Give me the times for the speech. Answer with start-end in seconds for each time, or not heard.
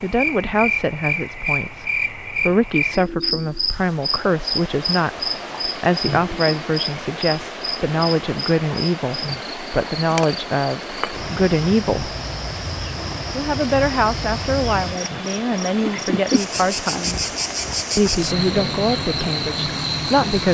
0.0-12.1, 13.3-17.2, 17.9-20.4.